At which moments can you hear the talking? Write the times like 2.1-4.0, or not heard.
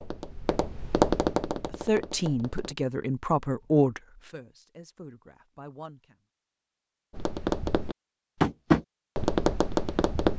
1.5-6.2.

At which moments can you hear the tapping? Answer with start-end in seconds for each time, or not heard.
0.0-2.8, 7.1-10.3.